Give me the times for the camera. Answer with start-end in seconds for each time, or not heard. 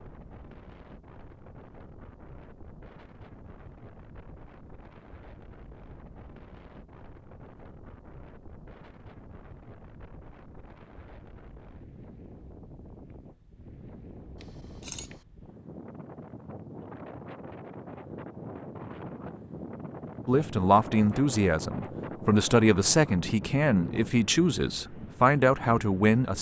14.4-15.2.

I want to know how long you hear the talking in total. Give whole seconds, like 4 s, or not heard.
6 s.